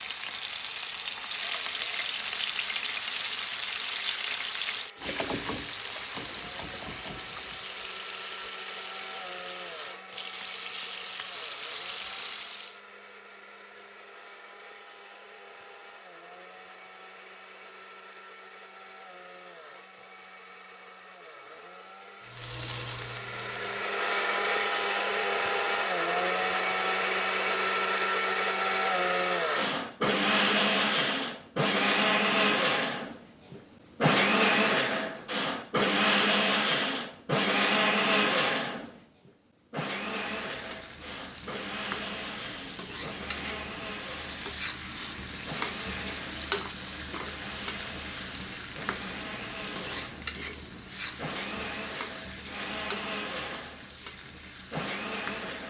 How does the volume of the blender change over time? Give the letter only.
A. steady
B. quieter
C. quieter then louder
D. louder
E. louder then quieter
E.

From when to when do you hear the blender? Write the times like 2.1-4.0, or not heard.
0.0-55.6.